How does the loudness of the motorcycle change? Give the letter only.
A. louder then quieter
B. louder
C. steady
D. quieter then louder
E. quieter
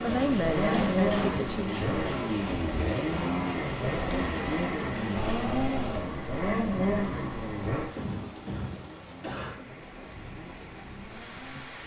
E.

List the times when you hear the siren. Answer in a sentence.
The siren can't be heard in this clip.